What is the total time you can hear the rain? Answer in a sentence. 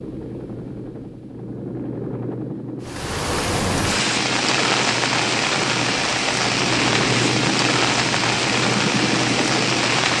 The rain can be heard for 7 seconds in total.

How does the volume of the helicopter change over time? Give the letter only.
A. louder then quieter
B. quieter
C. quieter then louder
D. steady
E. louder
E.